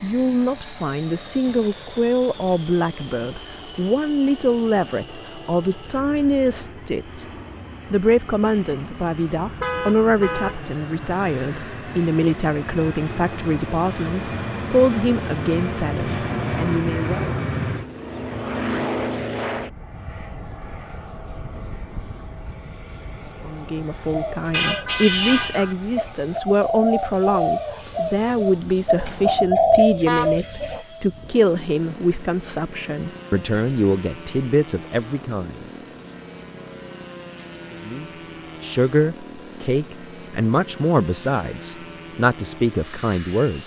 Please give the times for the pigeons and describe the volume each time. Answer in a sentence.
You can hear the pigeons from 24.1 to 30.8 s, getting louder.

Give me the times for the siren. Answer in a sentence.
You can't hear the siren here.